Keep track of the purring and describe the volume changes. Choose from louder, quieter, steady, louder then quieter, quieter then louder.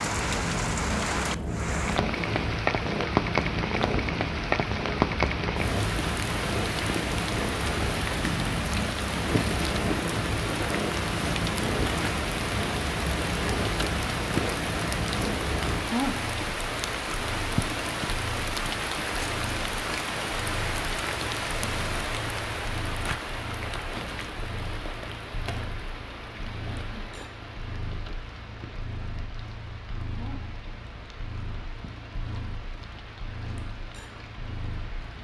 quieter.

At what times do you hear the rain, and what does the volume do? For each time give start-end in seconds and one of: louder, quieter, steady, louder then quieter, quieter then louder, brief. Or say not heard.
0.0-35.1 quieter.